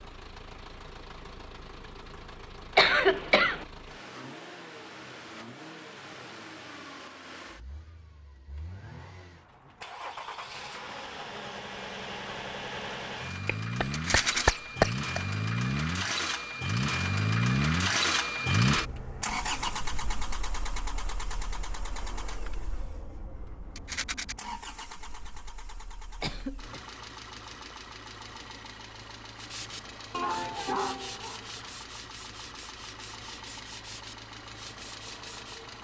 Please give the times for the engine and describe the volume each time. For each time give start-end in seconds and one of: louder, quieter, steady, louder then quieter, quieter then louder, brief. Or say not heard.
0.0-35.8 louder then quieter.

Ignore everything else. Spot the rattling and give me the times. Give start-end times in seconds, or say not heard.
13.9-14.6, 23.8-24.4.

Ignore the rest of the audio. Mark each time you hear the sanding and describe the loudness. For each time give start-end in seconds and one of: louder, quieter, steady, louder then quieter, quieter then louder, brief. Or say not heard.
29.4-35.6 quieter.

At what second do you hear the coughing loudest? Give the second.
3 s.